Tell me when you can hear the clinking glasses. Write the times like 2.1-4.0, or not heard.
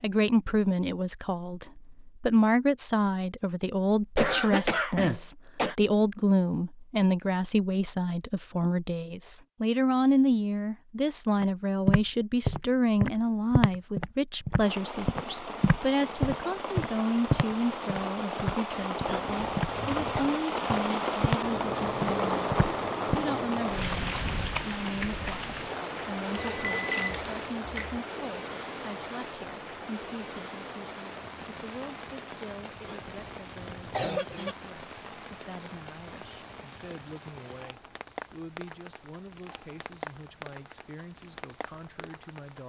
26.3-28.0.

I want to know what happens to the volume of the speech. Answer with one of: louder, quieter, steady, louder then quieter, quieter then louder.
quieter.